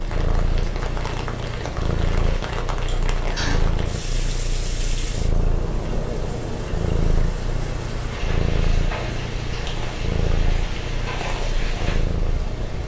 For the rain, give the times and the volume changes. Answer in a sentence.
You can hear the rain from 0.0 to 12.8 s, at a steady volume.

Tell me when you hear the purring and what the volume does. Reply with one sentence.
You can hear the purring from 0.0 to 12.8 s, at a steady volume.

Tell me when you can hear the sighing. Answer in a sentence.
You can hear the sighing from 2.9 to 3.6 s.